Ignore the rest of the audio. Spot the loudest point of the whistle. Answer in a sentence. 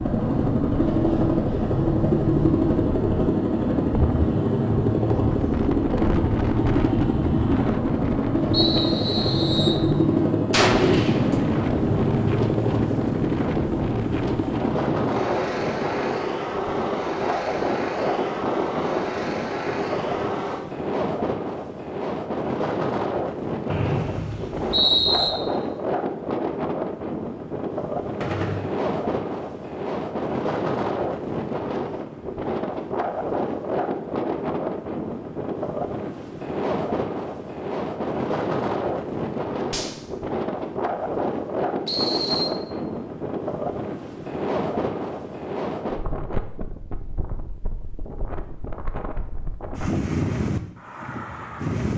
The volume of the whistle peaks at 25 seconds.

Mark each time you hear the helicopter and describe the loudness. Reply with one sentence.
You can hear the helicopter from 0.0 to 20.6 s, getting quieter.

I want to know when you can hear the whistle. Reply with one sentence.
The whistle can be heard from 8.5 to 9.8 s, from 23.7 to 25.3 s and from 41.9 to 42.5 s.